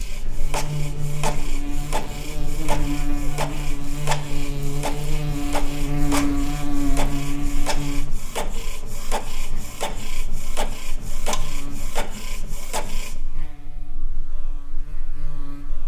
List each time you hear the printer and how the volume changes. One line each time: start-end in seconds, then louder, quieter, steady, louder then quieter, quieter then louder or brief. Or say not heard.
0.0-13.2 steady.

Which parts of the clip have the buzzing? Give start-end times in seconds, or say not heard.
0.0-15.8.